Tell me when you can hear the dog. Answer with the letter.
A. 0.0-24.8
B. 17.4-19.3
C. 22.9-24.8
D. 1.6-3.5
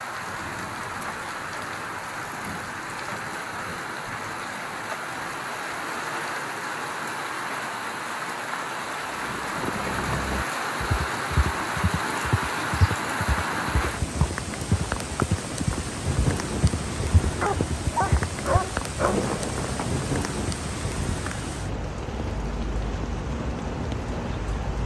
B.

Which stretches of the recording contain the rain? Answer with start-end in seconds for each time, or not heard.
0.0-24.8.